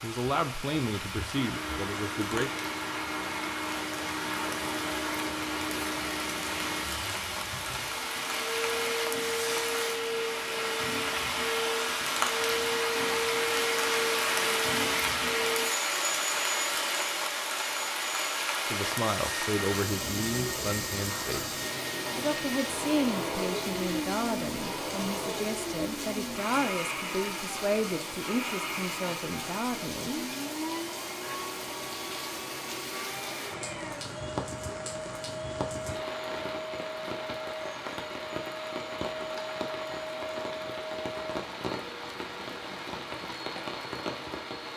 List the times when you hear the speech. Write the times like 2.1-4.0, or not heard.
0.0-2.5, 18.7-30.2.